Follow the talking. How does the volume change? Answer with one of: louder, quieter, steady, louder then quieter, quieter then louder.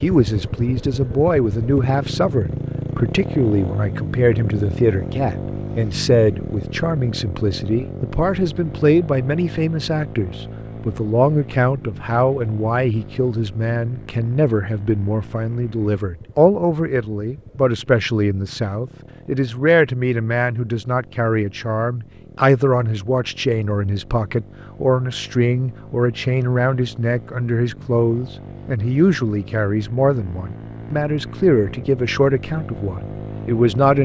steady.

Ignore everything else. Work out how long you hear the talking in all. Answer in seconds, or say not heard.
34 s.